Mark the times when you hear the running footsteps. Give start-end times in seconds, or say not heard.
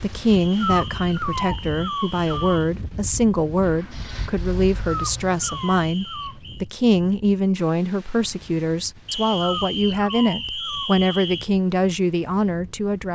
not heard.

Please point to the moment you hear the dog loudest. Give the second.
1 s.